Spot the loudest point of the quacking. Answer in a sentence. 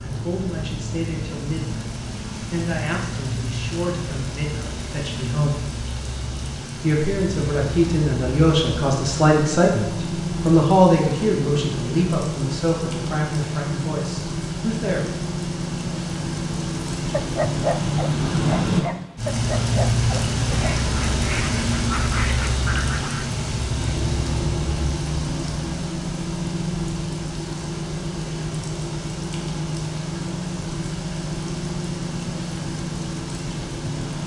The volume of the quacking peaks at 22 seconds.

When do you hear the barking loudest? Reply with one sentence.
The volume of the barking peaks at 18 seconds.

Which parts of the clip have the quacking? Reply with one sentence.
The quacking can be heard from 20.5 to 23.3 s.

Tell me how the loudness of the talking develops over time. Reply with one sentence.
The volume of the talking goes up, then down.